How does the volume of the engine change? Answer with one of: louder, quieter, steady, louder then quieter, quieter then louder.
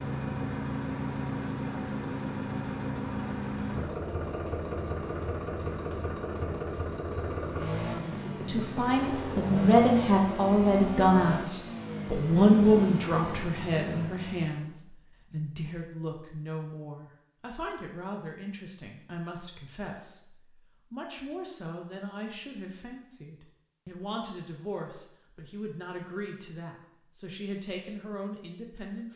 steady.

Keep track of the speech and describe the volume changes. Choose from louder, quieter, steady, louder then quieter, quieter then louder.
quieter.